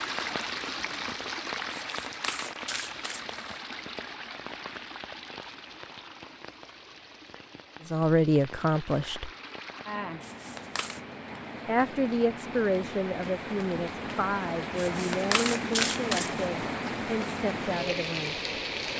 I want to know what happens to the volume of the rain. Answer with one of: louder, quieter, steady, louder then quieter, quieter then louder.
quieter then louder.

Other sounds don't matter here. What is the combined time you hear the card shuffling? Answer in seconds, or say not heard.
4 s.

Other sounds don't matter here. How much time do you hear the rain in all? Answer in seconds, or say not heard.
19 s.